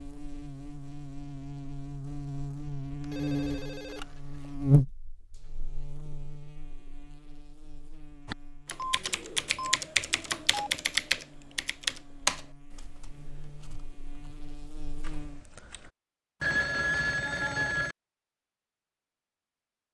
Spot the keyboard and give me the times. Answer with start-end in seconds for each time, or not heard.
8.2-15.9.